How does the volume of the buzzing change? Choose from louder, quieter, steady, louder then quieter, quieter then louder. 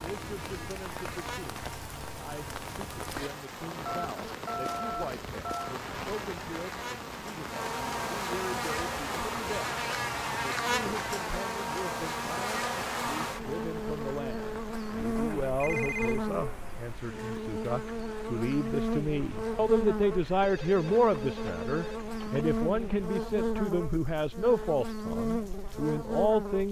louder.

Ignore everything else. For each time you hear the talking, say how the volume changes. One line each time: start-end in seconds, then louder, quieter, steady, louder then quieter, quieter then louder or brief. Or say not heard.
0.0-26.6 louder.